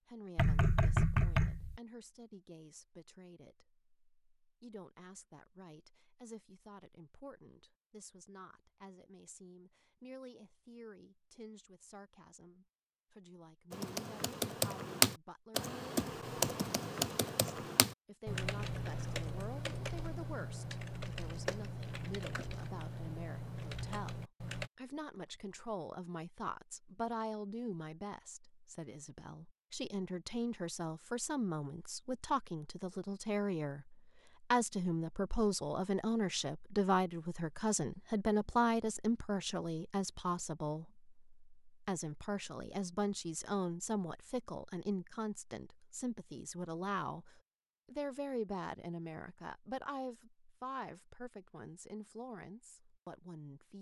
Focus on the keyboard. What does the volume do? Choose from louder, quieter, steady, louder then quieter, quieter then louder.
quieter.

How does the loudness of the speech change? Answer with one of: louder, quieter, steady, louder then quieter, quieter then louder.
louder then quieter.